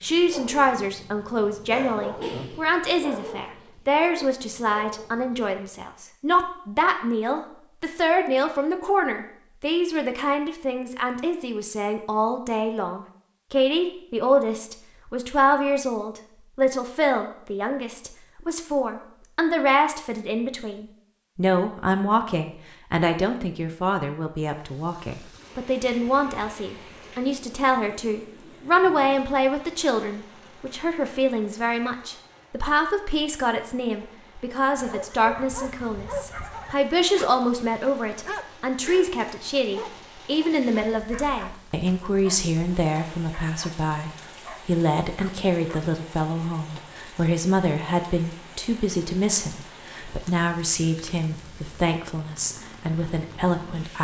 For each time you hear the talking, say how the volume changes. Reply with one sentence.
You can hear the talking from 0.0 to 54.0 s, at a steady volume.